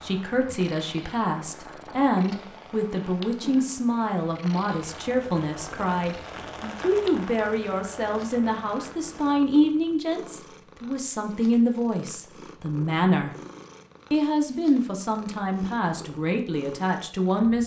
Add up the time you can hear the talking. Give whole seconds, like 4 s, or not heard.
17 s.